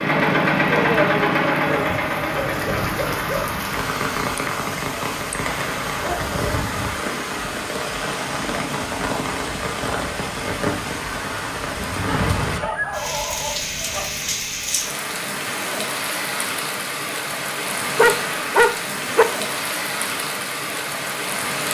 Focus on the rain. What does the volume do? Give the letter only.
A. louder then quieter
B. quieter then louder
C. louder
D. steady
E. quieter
D.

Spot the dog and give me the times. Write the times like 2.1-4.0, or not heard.
1.6-3.6, 6.0-6.7, 11.8-14.4, 17.9-19.2.